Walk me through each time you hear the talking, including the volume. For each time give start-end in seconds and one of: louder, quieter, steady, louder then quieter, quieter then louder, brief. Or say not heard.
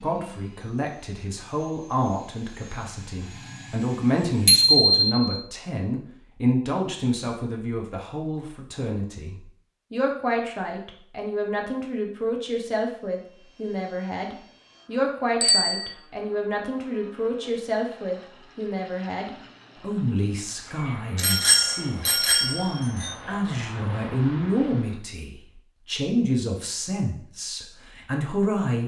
0.0-28.8 steady.